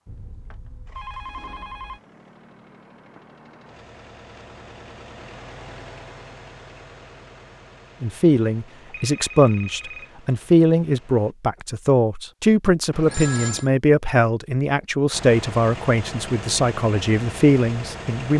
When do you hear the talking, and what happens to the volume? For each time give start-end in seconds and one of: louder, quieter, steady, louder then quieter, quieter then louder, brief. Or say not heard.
8.0-18.3 steady.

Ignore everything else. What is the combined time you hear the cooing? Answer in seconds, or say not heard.
not heard.